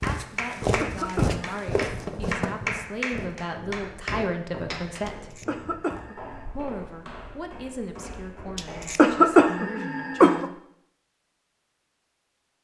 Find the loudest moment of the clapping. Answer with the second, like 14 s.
3 s.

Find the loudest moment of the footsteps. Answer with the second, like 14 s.
1 s.